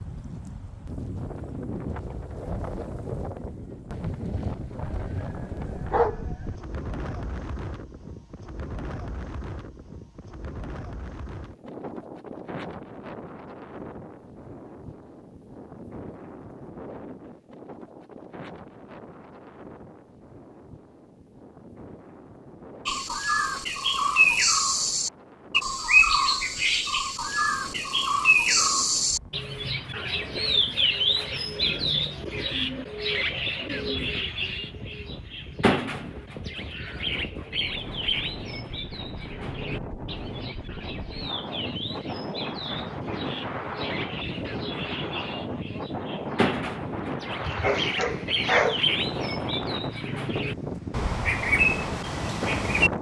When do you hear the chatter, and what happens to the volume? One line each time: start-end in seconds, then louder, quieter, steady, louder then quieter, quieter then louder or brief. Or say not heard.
not heard.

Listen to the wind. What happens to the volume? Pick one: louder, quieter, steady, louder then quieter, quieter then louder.
quieter then louder.